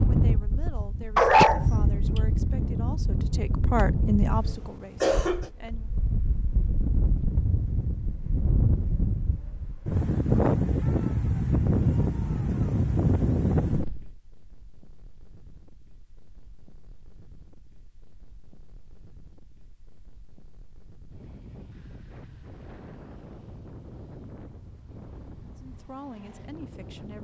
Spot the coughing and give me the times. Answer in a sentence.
The coughing can be heard from 4.3 to 5.5 s.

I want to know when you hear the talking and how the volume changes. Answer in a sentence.
You can hear the talking from 0.1 to 5.9 s, getting louder then quieter; and briefly from 25.6 to 27.2 s.